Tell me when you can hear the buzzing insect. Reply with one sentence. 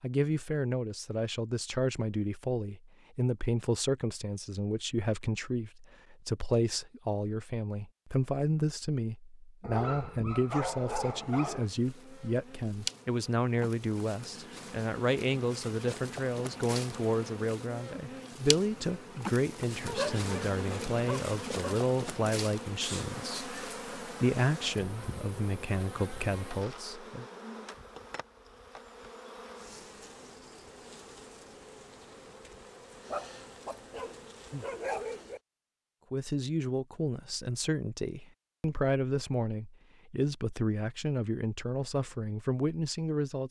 You can hear the buzzing insect from 10.7 to 35.4 s.